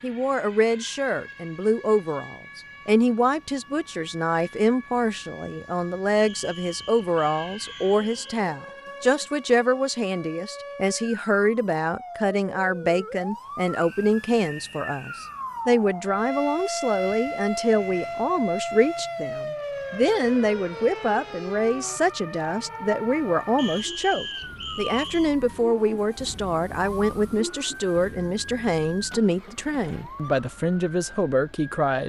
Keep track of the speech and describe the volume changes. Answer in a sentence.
The volume of the speech stays about the same.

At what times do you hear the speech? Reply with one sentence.
The speech can be heard from 0.0 to 32.0 s.